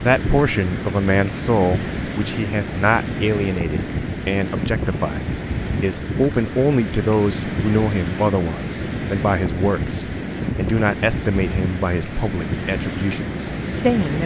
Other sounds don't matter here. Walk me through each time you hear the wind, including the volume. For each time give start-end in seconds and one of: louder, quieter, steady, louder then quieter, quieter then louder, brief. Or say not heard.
0.0-14.2 steady.